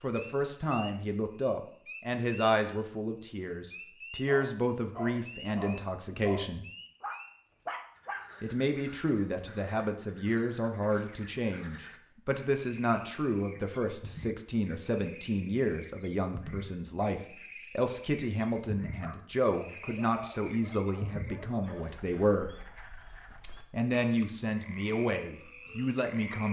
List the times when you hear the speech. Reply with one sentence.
You can hear the speech from 0.0 to 6.7 s, from 8.4 to 22.5 s and from 23.7 to 26.4 s.